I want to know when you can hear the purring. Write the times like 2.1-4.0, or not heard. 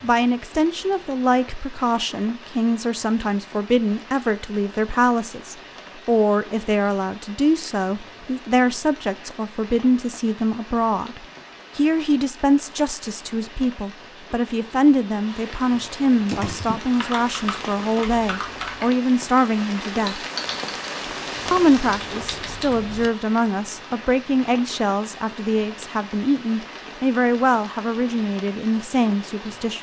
not heard.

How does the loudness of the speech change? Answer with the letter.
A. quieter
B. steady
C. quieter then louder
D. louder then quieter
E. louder
B.